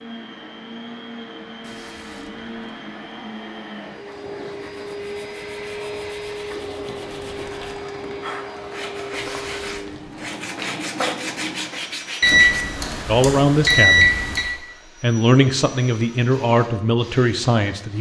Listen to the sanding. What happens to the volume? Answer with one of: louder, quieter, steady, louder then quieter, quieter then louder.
louder.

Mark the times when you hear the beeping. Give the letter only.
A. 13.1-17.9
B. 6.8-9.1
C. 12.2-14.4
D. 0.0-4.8
C.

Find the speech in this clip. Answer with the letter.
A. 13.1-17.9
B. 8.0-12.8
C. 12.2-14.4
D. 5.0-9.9
A.